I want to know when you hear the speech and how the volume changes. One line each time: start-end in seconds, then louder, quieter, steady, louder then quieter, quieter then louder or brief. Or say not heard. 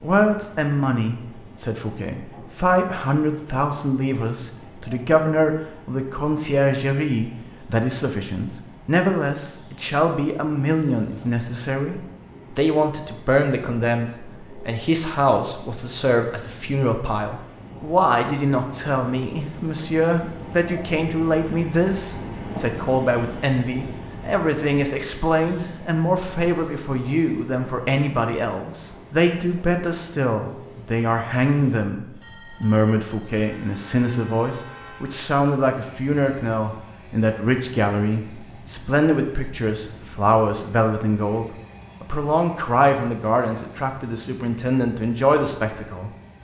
0.0-46.1 steady.